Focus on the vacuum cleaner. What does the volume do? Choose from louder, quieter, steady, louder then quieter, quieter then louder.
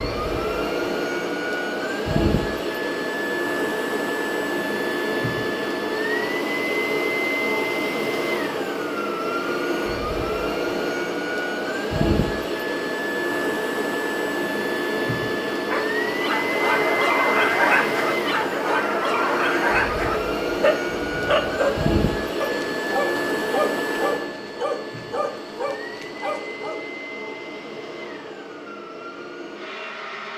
quieter.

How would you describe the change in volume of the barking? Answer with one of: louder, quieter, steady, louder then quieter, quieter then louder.
quieter.